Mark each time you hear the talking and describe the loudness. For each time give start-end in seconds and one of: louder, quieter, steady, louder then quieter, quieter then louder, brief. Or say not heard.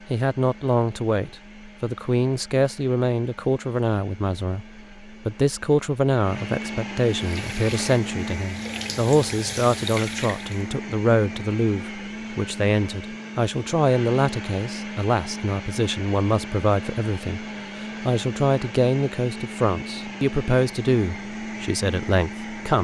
0.1-22.8 steady.